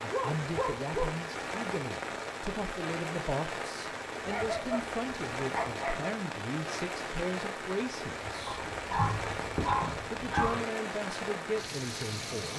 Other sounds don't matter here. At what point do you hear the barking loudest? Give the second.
10 s.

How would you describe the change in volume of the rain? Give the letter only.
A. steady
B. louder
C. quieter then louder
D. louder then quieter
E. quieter
A.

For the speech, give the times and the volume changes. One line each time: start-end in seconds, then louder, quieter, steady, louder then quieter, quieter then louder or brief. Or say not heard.
0.0-8.6 steady
10.0-12.5 brief.